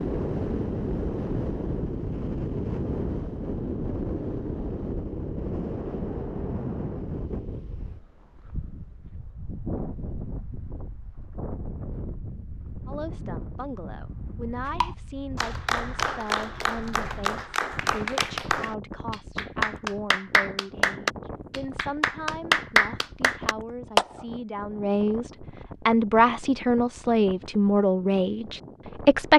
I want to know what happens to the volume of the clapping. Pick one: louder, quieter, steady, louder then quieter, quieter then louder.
louder.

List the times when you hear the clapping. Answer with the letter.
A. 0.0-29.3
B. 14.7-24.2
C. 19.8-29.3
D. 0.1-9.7
B.